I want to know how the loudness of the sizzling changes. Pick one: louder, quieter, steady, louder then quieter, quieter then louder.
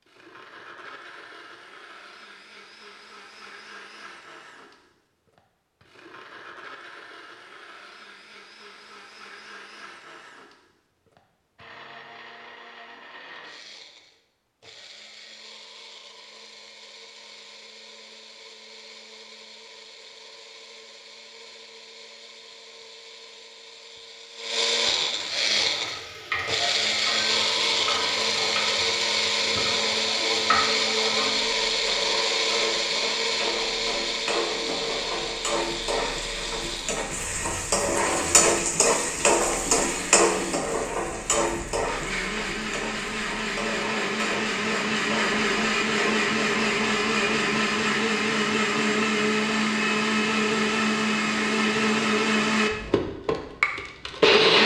louder then quieter.